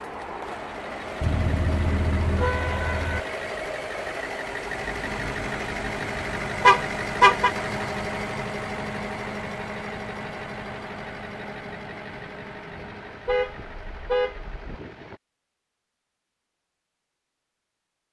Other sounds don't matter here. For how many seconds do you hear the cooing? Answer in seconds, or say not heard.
not heard.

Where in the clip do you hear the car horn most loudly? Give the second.
7 s.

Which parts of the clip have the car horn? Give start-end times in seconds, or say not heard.
1.2-3.2, 6.6-7.5, 13.2-14.8.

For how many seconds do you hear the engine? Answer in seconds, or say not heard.
15 s.